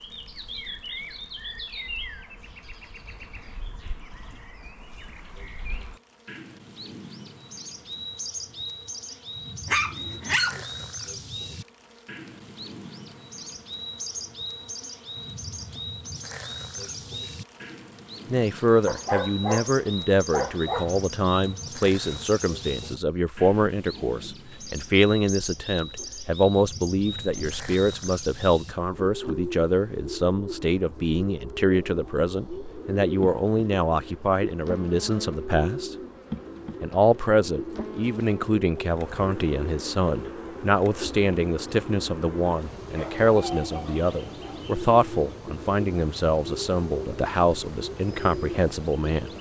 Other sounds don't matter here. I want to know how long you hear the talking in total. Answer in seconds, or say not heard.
30 s.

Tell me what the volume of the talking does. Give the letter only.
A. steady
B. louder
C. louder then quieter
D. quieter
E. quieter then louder
A.